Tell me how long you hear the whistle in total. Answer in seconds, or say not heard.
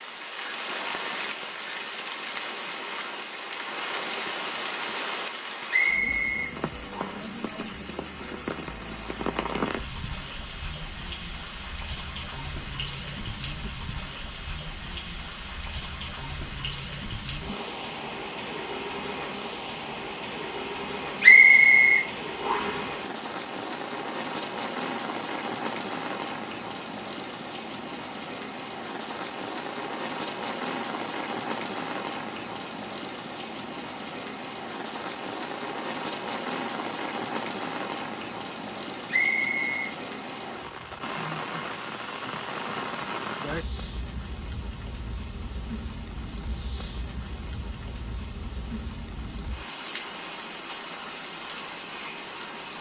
4 s.